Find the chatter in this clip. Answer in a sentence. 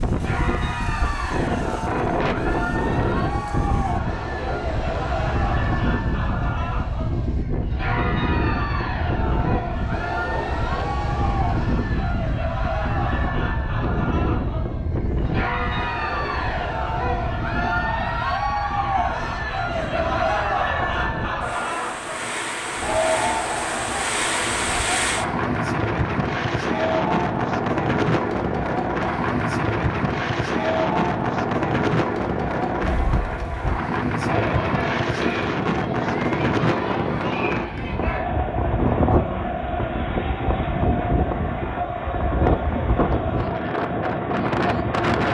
You can hear the chatter from 0.1 to 45.2 s.